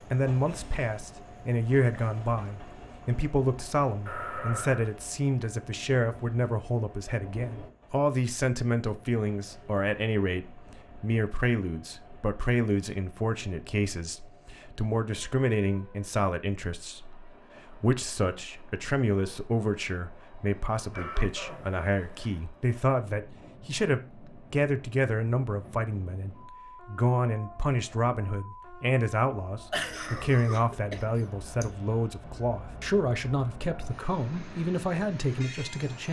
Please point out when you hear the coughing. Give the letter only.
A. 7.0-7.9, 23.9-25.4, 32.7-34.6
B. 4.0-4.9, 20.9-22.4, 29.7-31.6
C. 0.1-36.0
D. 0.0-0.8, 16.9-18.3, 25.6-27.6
B.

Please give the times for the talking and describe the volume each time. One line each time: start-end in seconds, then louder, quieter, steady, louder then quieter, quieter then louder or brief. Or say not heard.
0.1-36.0 steady.